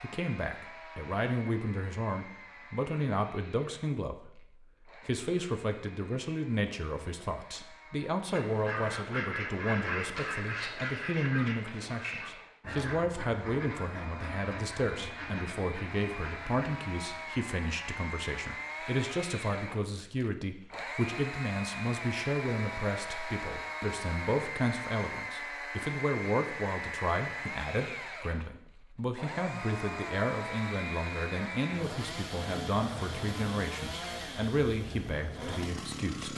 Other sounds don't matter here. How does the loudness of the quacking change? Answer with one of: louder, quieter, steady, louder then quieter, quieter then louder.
quieter.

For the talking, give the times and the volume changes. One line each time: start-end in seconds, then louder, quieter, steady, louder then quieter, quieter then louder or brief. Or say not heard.
0.0-36.3 steady.